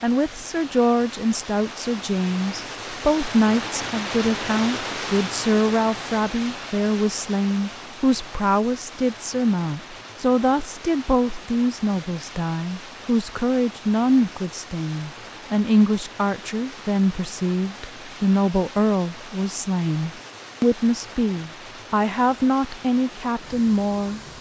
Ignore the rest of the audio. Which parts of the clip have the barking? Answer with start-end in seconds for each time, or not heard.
not heard.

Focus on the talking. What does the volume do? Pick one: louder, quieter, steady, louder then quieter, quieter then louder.
steady.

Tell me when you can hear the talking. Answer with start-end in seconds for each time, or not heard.
0.0-24.2.